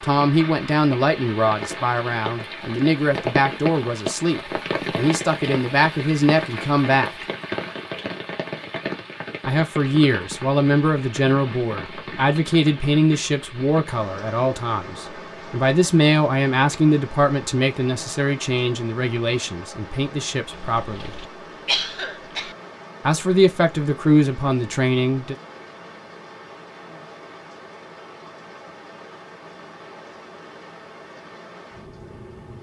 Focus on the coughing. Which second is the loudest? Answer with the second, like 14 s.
22 s.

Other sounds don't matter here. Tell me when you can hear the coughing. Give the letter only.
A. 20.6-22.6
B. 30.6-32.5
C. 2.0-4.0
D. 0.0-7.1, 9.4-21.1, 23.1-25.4
A.